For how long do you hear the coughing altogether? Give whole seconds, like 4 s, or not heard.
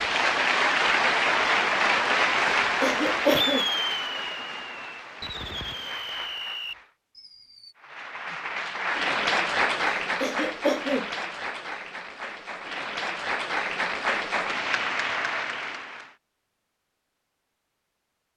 2 s.